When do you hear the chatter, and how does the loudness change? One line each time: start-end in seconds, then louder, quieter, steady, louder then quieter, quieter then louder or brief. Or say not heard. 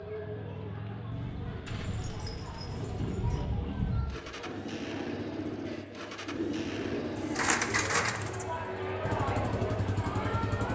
0.0-10.7 louder.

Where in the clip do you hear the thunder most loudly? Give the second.
4 s.